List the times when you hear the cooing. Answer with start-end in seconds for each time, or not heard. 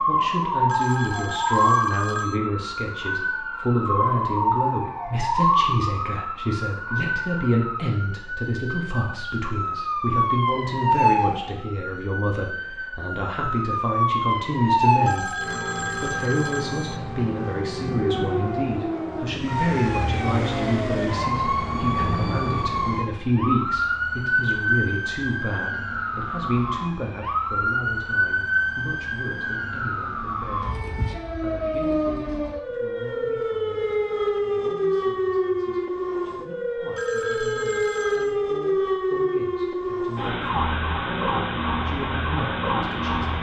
not heard.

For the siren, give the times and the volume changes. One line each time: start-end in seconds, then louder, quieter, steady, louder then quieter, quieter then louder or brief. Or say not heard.
0.0-43.3 steady.